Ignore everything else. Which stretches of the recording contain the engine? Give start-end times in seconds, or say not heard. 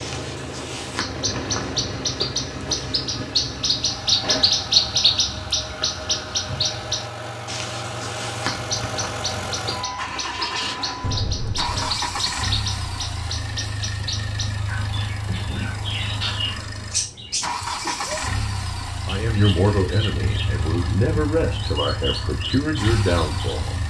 0.0-23.8.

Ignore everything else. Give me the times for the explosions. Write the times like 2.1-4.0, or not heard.
11.0-12.3.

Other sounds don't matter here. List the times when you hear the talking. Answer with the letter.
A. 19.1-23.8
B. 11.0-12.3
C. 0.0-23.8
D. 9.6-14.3
A.